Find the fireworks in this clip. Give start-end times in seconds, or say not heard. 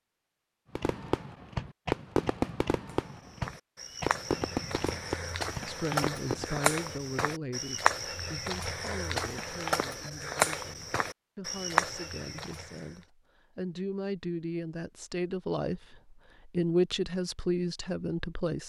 0.8-6.6.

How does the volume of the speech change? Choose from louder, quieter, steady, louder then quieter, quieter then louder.
quieter then louder.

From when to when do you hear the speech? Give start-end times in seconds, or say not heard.
5.7-18.6.